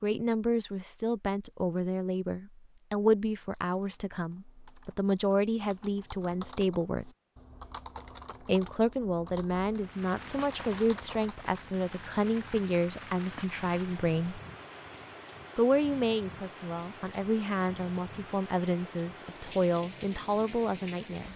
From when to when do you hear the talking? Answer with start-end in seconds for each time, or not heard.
0.0-7.1, 8.4-14.4, 15.6-21.3.